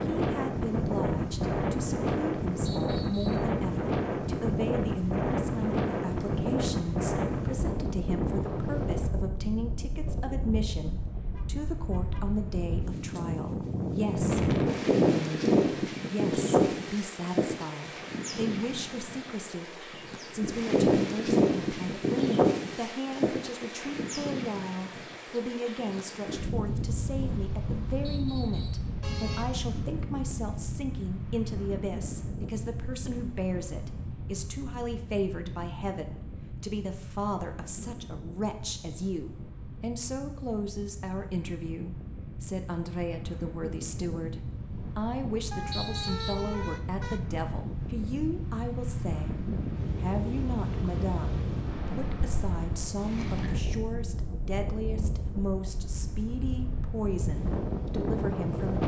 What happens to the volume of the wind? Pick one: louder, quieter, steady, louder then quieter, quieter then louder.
quieter then louder.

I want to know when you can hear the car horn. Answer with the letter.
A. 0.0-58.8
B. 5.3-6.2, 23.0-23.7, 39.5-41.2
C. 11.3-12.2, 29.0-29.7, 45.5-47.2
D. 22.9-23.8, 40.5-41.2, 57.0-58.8
C.